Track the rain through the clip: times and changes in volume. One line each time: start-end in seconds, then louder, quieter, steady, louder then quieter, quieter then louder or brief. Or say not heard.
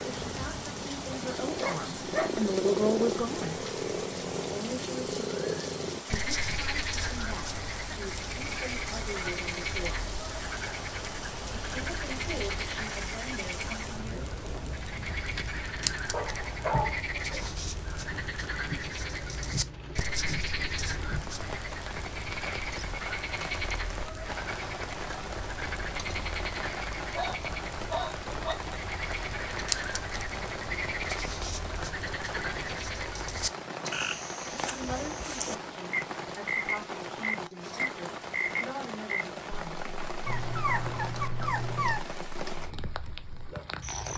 0.0-44.1 steady.